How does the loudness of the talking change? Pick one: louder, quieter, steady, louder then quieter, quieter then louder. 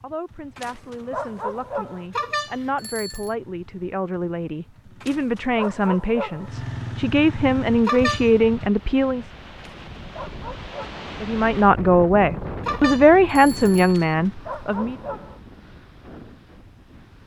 louder.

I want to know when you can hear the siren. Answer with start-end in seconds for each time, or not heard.
not heard.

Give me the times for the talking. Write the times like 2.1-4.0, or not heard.
0.0-9.2, 11.2-14.9.